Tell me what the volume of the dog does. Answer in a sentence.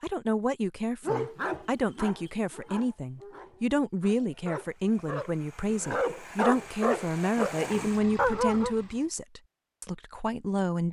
The loudness of the dog goes down, then up.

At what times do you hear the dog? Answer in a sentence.
You can hear the dog from 1.0 to 8.8 s.